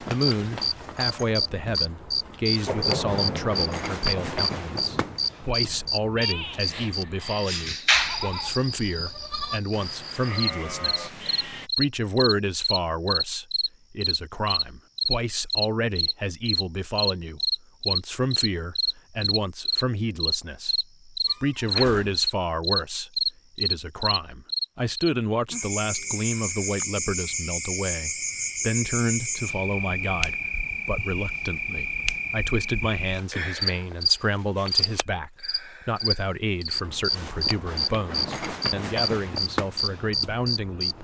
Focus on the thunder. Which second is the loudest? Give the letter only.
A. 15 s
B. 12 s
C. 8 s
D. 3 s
D.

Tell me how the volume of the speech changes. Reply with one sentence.
The loudness of the speech stays about the same.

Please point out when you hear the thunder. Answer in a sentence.
The thunder can be heard from 2.6 to 5.2 s.